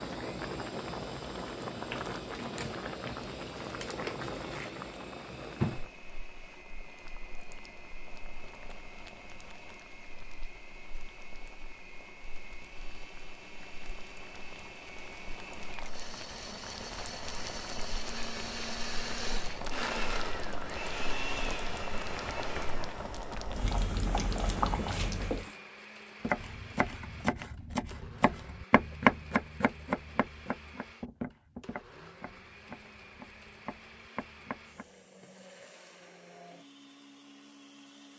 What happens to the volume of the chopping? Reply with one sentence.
The loudness of the chopping goes up, then down.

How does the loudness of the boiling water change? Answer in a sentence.
The volume of the boiling water goes down, then up.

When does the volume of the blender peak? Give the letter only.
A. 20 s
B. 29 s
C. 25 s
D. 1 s
A.